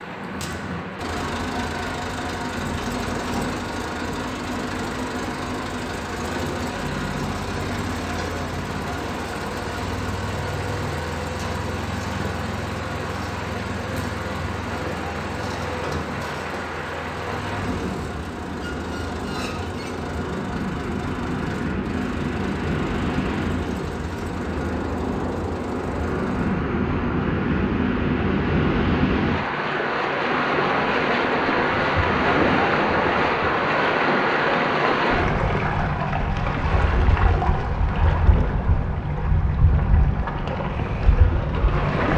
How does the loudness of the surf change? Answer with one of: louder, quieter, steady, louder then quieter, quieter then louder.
louder.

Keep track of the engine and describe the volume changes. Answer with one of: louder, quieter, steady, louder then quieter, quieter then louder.
quieter.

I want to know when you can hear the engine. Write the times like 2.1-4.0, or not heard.
0.0-26.6.